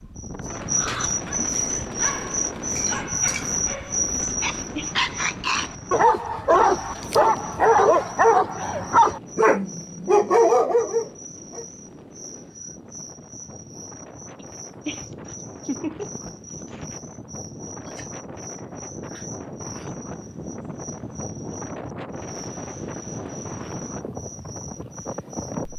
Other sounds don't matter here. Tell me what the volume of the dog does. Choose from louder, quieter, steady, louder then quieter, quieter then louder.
louder.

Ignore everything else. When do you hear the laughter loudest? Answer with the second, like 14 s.
16 s.